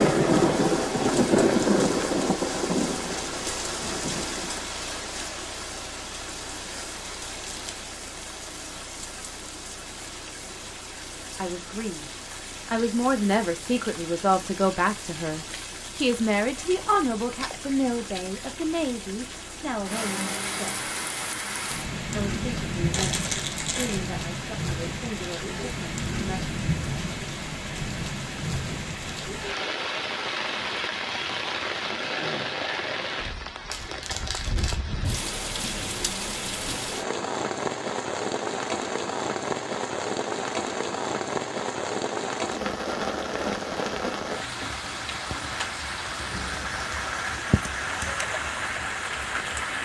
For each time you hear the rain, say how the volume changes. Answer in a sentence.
You can hear the rain from 0.0 to 49.8 s, getting quieter then louder.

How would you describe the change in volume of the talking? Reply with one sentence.
The volume of the talking goes down.